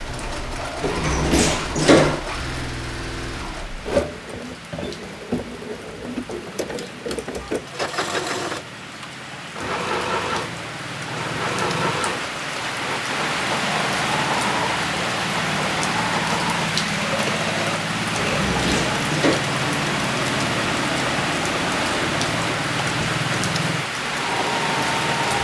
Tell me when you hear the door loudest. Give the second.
2 s.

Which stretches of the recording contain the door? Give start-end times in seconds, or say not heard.
0.8-2.2, 18.4-19.4.